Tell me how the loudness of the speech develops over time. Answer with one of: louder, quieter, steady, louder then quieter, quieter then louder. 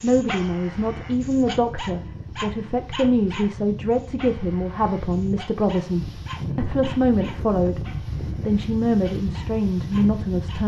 steady.